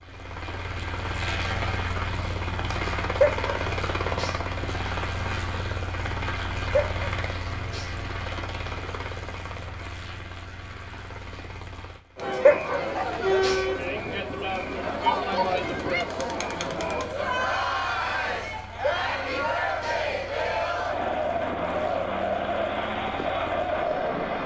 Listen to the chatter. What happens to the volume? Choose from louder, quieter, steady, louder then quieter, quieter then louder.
steady.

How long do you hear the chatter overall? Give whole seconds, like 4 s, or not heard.
12 s.